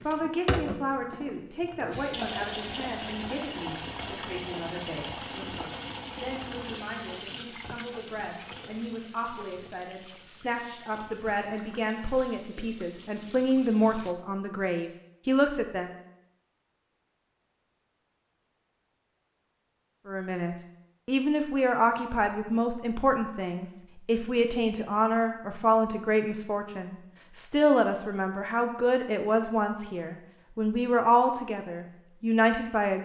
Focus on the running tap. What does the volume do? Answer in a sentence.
The volume of the running tap goes down.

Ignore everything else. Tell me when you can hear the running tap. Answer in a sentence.
You can hear the running tap from 0.0 to 14.2 s.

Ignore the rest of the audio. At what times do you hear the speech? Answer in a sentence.
The speech can be heard from 0.1 to 15.9 s and from 20.1 to 33.0 s.